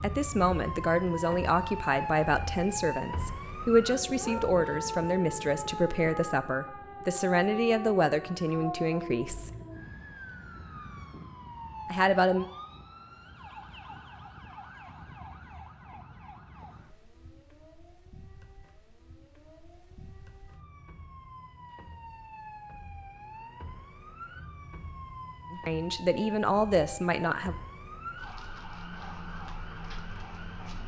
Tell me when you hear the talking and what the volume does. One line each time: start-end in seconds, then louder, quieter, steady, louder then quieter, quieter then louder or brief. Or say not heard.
0.0-9.5 steady
11.9-12.4 brief
25.5-27.6 brief.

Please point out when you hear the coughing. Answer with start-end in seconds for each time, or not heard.
not heard.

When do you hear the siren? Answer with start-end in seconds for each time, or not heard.
0.0-30.8.